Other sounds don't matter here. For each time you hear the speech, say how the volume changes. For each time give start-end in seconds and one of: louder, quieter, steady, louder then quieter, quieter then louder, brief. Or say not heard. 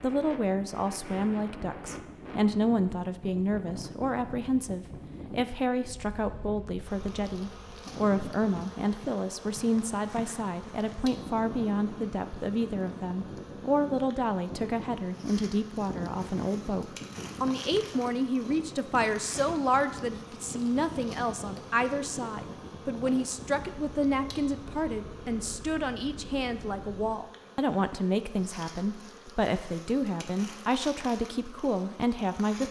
0.0-32.6 steady.